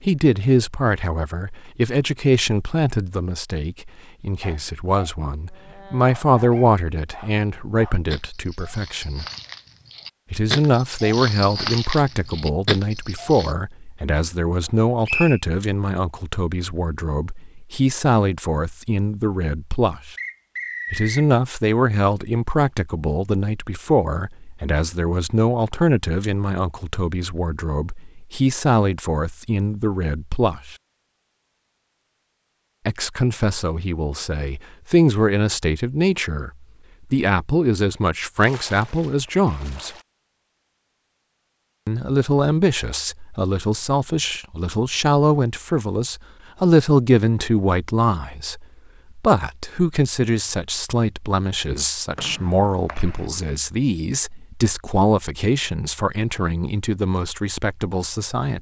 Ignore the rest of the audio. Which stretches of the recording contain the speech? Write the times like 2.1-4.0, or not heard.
0.0-9.2, 10.3-20.1, 20.9-30.8, 32.9-39.9, 41.9-58.5.